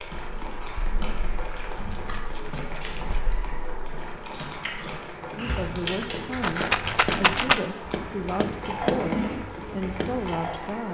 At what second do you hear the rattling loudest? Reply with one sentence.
The loudest moment of the rattling is at 7 seconds.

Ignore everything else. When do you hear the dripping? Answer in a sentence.
You can't hear the dripping here.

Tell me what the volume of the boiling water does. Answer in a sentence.
The loudness of the boiling water stays about the same.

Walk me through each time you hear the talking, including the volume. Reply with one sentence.
The talking can be heard from 5.3 to 10.8 s, at a steady volume.